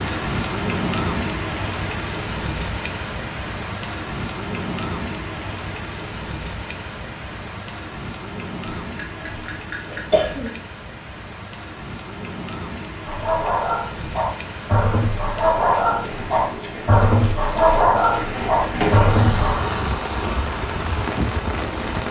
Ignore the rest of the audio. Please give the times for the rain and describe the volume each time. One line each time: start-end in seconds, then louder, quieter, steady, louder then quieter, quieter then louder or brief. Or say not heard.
0.0-22.0 quieter then louder.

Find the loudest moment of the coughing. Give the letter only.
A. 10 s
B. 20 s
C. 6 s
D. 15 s
A.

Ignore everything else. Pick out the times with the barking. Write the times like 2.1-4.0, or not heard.
13.1-19.6.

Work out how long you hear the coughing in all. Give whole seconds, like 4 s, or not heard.
2 s.